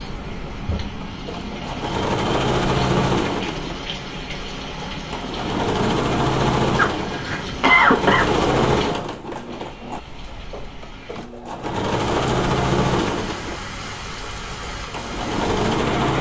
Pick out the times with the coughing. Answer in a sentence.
You can hear the coughing from 6.8 to 8.2 s.